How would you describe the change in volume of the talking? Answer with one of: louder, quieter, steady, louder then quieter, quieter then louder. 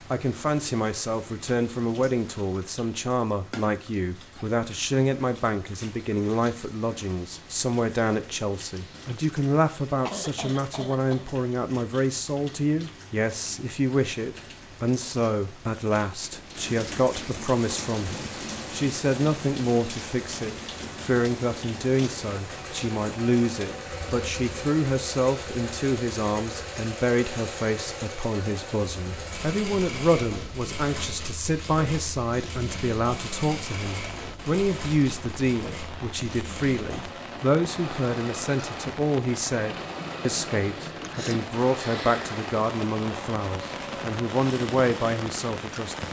steady.